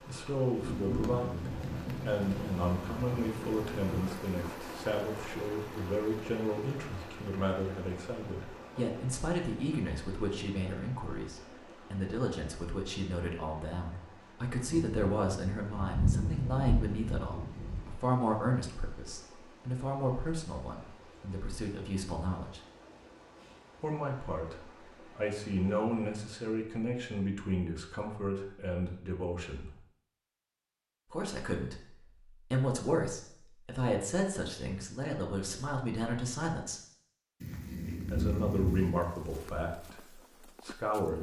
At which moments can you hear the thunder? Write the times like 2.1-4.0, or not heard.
0.6-4.2, 14.6-17.8, 37.4-38.9.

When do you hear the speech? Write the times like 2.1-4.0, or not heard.
0.1-22.6, 23.8-29.7, 31.1-31.9, 32.5-36.8, 38.1-40.0, 40.6-41.1.